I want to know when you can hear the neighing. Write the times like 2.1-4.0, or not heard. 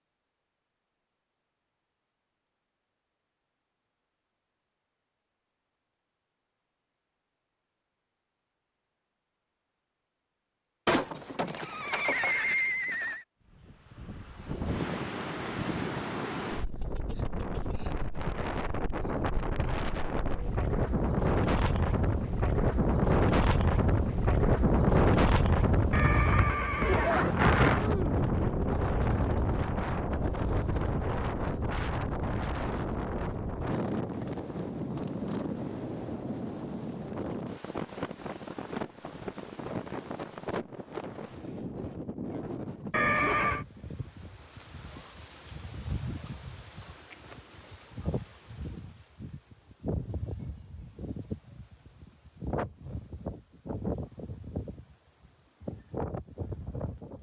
10.8-13.2, 25.9-27.4, 42.9-43.6.